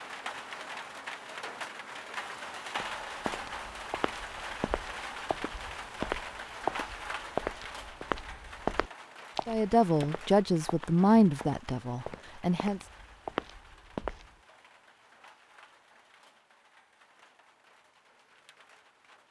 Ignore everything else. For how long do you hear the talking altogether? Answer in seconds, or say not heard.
3 s.